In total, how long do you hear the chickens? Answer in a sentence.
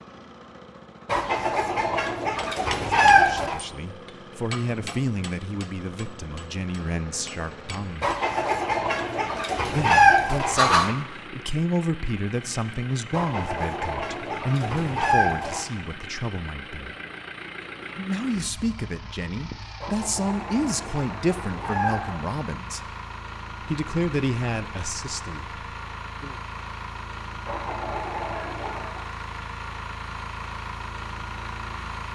The chickens can be heard for 12 seconds in total.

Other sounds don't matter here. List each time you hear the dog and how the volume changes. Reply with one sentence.
You can't hear the dog here.